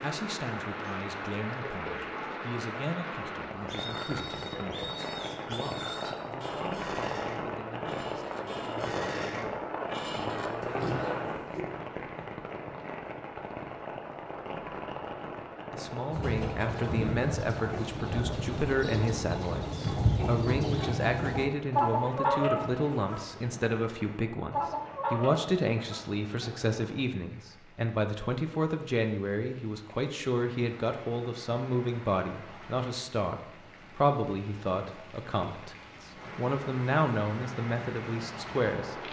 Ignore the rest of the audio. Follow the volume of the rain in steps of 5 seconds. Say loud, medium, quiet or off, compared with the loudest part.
loud, loud, loud, medium, quiet, quiet, quiet, medium.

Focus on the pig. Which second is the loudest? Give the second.
11 s.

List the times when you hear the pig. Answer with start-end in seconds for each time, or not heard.
3.5-11.7.